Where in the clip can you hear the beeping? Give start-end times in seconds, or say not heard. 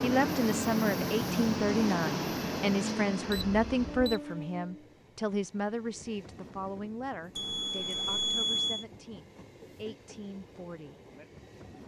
3.2-4.2, 7.3-8.8.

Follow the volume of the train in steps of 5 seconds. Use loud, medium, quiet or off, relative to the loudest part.
loud, quiet, quiet.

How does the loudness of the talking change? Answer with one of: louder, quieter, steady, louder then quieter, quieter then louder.
quieter.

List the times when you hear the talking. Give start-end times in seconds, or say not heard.
0.0-10.9.